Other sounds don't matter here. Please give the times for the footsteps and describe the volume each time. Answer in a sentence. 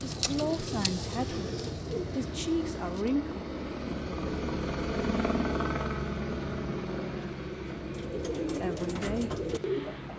You can't hear the footsteps here.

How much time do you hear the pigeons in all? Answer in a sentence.
You can hear the pigeons for 6 seconds altogether.